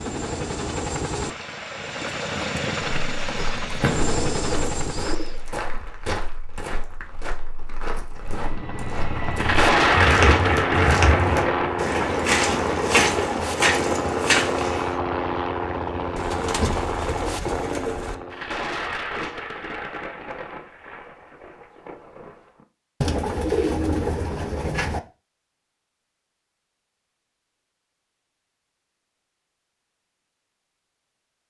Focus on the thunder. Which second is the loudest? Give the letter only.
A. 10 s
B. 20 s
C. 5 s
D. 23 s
A.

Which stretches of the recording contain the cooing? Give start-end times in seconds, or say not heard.
3.6-5.4, 16.1-18.1, 23.0-25.0.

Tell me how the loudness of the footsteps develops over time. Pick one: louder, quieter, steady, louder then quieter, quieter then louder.
louder.